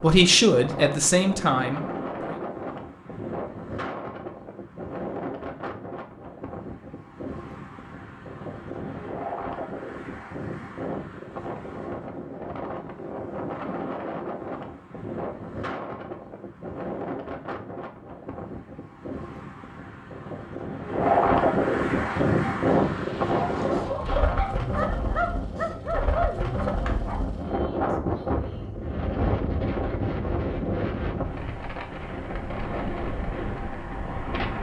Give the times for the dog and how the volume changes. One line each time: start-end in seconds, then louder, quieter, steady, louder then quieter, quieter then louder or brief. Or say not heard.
22.0-27.2 louder.